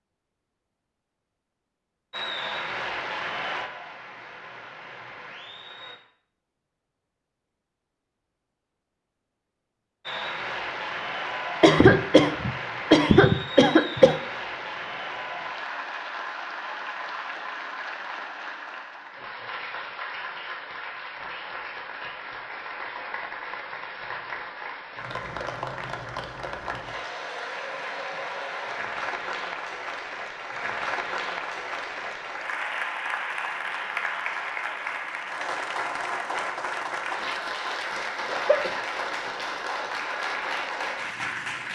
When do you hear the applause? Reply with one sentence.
You can hear the applause from 2.1 to 6.0 s and from 10.1 to 41.7 s.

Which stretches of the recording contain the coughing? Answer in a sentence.
The coughing can be heard from 11.6 to 14.2 s and from 38.2 to 39.9 s.